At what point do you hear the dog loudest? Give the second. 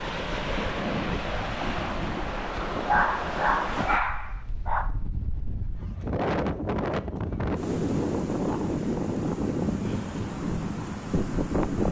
3 s.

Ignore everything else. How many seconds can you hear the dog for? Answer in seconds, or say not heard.
2 s.